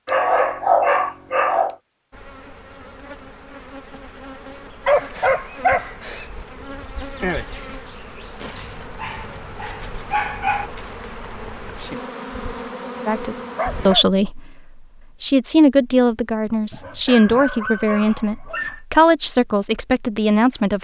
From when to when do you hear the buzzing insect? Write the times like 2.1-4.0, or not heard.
2.1-13.9.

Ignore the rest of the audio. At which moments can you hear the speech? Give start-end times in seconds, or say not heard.
13.1-20.8.